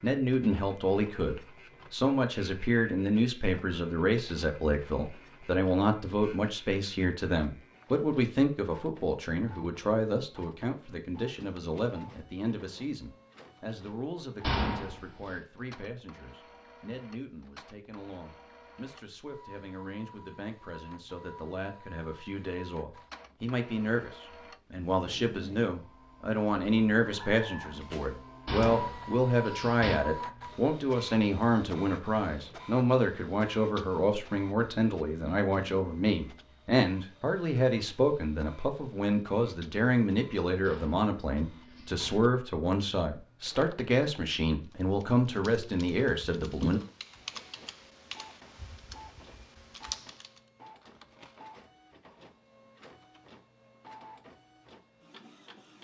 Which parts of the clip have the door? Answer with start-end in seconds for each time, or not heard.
14.4-15.3, 28.4-29.9, 40.6-42.1.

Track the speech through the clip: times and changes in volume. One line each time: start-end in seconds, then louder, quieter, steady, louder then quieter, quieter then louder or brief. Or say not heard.
0.0-46.8 quieter then louder.